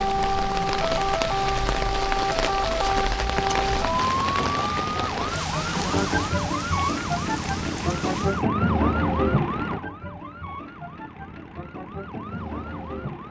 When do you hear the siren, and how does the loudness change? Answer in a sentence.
You can hear the siren from 0.0 to 13.2 s, getting quieter.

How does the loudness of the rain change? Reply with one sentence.
The volume of the rain goes down.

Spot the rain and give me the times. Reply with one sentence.
The rain can be heard from 0.0 to 8.4 s.